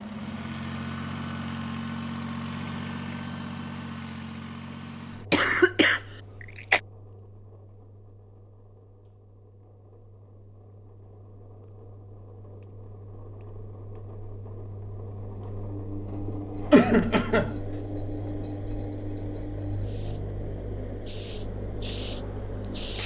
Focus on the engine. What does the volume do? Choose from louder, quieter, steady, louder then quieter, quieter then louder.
quieter then louder.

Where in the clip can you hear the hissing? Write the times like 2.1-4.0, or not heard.
19.8-23.0.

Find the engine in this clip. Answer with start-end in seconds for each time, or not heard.
0.0-23.0.